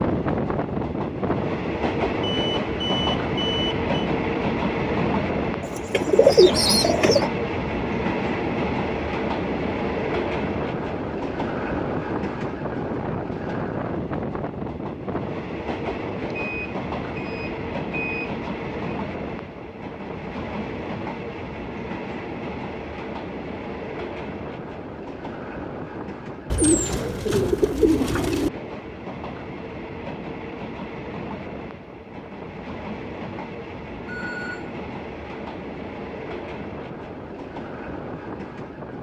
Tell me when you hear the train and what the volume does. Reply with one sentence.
You can hear the train from 0.0 to 38.9 s, getting quieter.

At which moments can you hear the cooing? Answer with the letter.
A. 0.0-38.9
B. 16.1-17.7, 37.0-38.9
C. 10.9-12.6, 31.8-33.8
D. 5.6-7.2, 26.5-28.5
D.